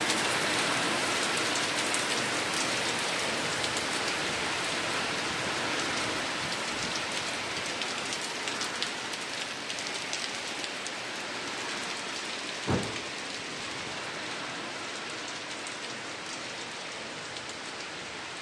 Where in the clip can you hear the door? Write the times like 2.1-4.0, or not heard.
12.7-13.1.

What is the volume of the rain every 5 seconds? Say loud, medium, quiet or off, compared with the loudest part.
loud, loud, medium, medium.